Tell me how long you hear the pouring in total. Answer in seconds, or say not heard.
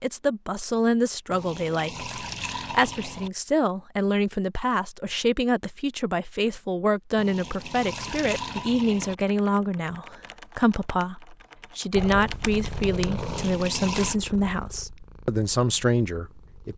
5 s.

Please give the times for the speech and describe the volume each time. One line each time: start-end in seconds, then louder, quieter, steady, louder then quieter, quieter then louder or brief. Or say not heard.
0.0-16.7 steady.